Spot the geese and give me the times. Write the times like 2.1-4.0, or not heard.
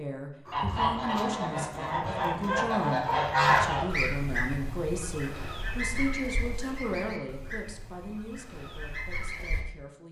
0.5-9.7.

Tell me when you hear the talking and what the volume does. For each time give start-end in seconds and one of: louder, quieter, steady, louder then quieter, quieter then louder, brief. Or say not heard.
0.0-10.0 quieter.